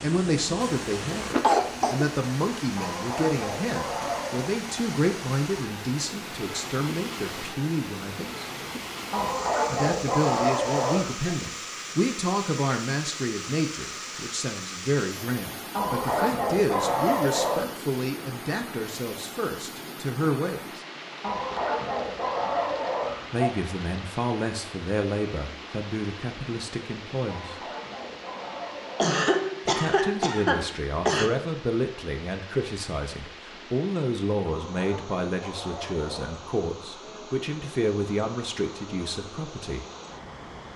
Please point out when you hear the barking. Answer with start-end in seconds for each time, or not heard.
2.8-4.5, 9.1-11.3, 15.8-17.7, 21.2-23.6, 27.2-29.2, 34.5-36.5.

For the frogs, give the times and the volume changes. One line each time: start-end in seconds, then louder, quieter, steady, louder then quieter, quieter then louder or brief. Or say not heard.
not heard.